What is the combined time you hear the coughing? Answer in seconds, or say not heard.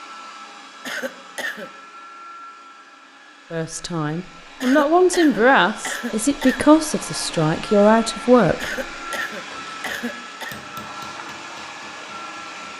5 s.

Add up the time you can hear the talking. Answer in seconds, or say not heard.
5 s.